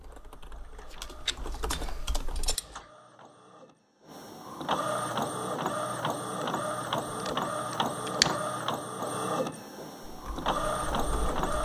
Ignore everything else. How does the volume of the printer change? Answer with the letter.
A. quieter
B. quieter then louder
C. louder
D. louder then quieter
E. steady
C.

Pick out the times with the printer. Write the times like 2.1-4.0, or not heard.
0.0-11.6.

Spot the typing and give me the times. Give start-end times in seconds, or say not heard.
0.0-2.6, 10.1-11.6.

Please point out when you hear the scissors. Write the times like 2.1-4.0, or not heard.
1.2-2.8, 7.2-8.3.